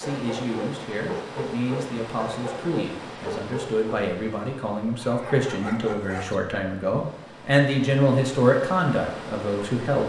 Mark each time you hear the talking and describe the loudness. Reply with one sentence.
You can hear the talking from 0.0 to 10.0 s, getting louder.